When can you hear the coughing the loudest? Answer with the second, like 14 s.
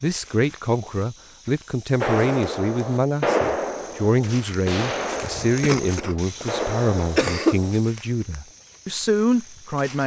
7 s.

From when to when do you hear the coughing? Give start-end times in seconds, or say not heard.
5.6-7.6.